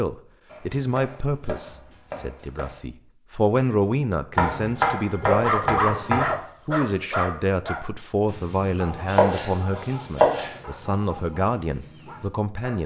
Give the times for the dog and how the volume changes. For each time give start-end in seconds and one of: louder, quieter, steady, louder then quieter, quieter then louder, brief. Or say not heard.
5.2-12.8 quieter.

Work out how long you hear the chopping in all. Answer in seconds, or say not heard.
6 s.